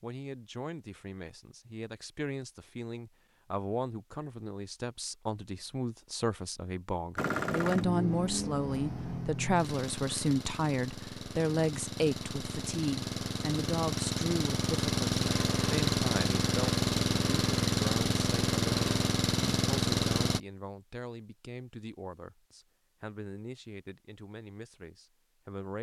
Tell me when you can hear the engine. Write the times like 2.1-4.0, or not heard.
7.2-20.4.